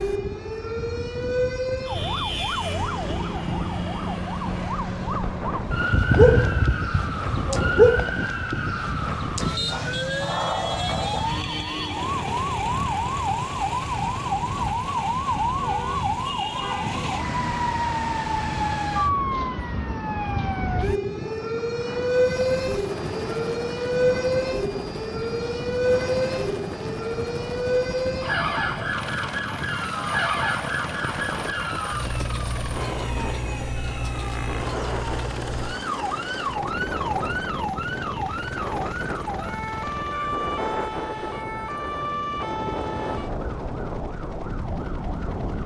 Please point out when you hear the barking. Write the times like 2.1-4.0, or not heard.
5.8-8.1.